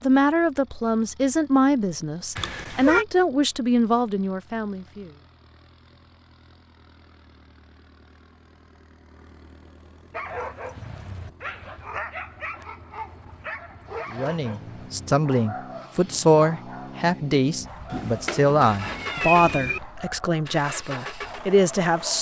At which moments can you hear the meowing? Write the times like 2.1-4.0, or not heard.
2.4-3.0, 17.9-19.8.